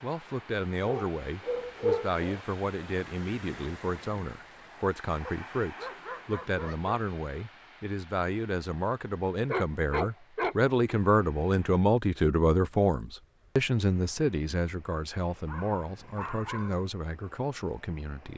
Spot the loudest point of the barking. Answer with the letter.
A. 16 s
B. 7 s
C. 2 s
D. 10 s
C.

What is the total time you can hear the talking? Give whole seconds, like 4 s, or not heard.
18 s.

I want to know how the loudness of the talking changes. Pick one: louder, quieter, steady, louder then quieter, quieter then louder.
louder then quieter.